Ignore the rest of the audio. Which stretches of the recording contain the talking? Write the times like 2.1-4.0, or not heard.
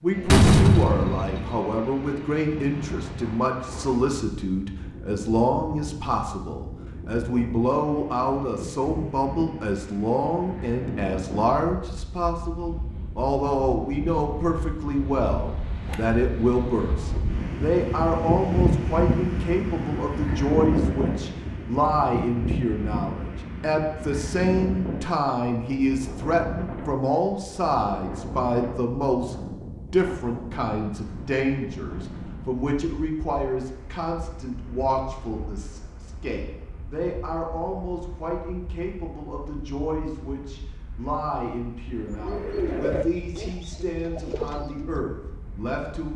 0.0-46.1.